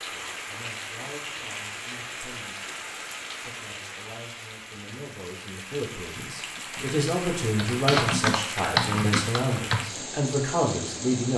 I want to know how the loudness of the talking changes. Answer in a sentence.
The volume of the talking goes up.